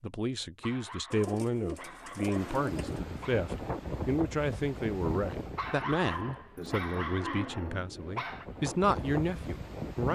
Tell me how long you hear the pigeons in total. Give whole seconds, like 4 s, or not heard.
4 s.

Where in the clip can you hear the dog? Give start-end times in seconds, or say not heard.
0.6-3.5, 5.5-8.4.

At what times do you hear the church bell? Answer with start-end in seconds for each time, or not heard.
not heard.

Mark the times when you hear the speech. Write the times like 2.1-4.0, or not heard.
0.0-10.1.